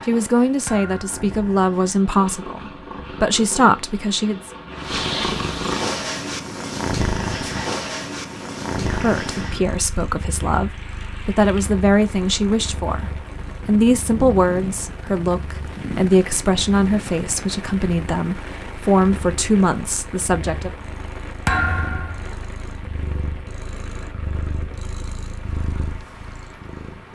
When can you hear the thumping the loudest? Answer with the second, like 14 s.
22 s.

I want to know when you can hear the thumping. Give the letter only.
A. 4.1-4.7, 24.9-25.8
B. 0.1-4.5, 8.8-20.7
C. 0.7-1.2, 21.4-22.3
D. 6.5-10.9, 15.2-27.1
C.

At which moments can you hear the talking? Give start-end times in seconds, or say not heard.
0.1-4.5, 8.8-20.7.